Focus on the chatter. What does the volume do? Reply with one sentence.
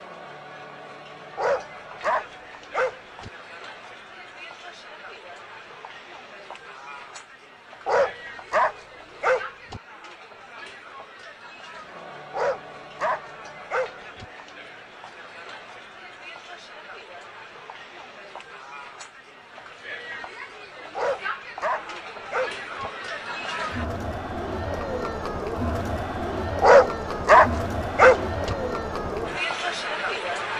The volume of the chatter goes up.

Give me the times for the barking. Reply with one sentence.
The barking can be heard from 1.4 to 3.3 s, from 7.8 to 9.8 s, from 12.3 to 14.2 s, from 20.9 to 22.9 s and from 26.6 to 28.6 s.